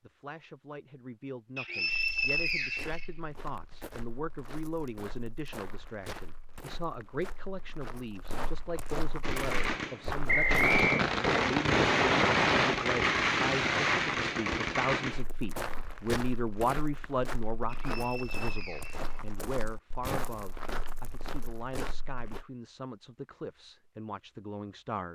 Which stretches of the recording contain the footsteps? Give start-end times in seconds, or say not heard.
1.9-10.8, 15.1-22.4.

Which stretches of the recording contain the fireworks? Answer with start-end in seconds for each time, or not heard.
9.2-15.2.